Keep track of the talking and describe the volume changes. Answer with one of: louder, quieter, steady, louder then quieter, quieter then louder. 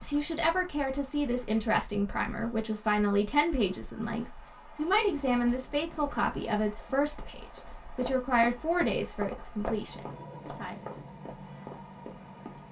steady.